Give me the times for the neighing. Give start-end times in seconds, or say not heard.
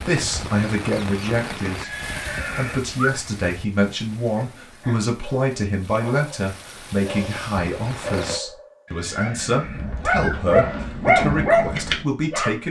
1.8-3.1, 8.8-10.3.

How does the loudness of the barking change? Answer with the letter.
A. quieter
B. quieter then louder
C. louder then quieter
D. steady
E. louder
E.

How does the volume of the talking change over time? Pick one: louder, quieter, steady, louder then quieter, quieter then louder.
steady.